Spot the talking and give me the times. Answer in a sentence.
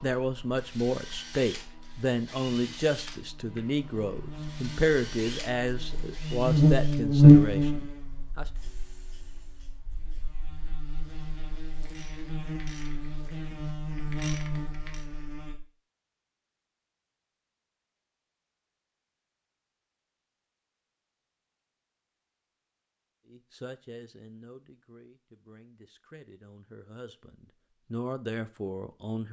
You can hear the talking from 0.0 to 8.4 s and from 23.2 to 29.2 s.